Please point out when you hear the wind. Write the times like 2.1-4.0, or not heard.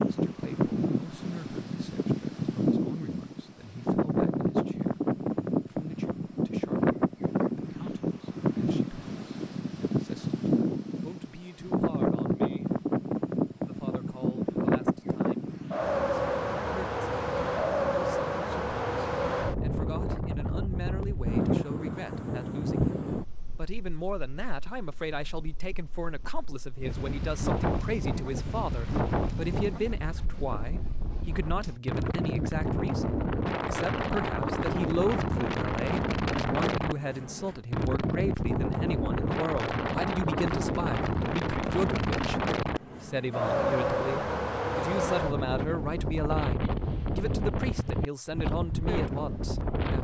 0.0-49.9.